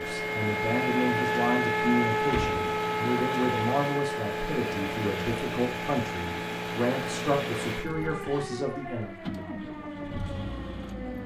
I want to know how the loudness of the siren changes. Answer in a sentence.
The loudness of the siren goes down.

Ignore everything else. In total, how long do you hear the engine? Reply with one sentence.
The engine can be heard for 11 seconds in total.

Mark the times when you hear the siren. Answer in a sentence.
The siren can be heard from 0.0 to 11.2 s.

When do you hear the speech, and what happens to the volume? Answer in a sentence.
The speech can be heard from 0.0 to 9.2 s, at a steady volume.